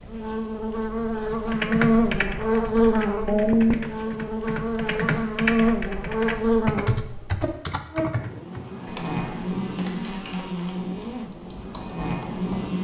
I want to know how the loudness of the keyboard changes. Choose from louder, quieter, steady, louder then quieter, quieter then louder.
quieter.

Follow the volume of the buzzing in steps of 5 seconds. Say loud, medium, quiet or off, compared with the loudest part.
loud, loud, medium.